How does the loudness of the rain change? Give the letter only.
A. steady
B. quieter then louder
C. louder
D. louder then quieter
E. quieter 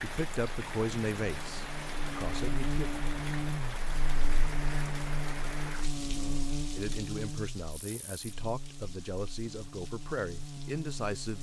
E.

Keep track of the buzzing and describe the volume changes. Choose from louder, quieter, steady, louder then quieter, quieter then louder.
quieter.